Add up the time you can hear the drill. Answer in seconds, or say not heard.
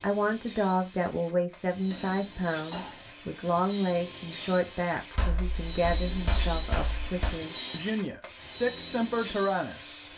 10 s.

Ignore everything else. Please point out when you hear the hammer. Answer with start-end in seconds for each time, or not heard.
1.9-3.1, 5.2-7.3.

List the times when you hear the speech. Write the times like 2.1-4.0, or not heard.
0.0-10.1.